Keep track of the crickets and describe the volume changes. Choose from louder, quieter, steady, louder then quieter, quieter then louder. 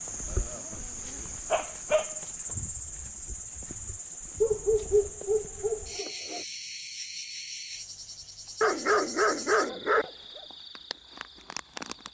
quieter.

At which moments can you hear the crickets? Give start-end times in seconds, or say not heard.
0.0-12.0.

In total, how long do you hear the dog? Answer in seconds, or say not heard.
6 s.